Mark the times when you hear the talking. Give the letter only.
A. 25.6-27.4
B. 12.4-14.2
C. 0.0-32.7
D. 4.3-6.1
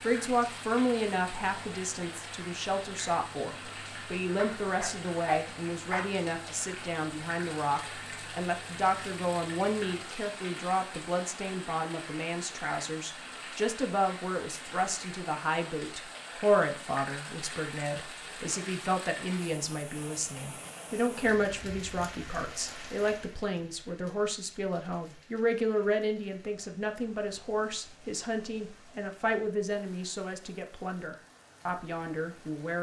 C.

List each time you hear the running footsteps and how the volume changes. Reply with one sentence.
You can't hear the running footsteps here.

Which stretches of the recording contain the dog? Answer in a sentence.
You can hear the dog from 4.3 to 6.1 s.